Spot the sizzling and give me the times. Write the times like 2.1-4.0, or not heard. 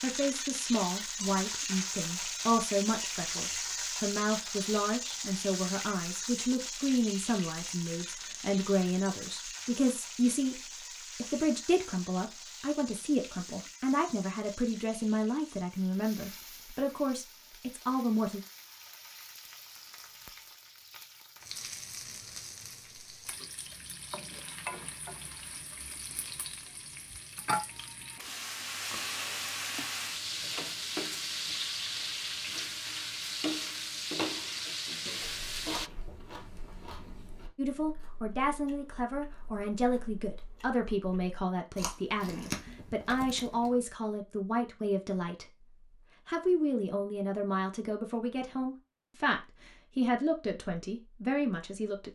0.0-35.9.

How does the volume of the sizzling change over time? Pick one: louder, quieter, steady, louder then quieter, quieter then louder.
quieter then louder.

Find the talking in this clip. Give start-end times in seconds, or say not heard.
0.0-18.4, 37.5-45.6, 46.2-52.1.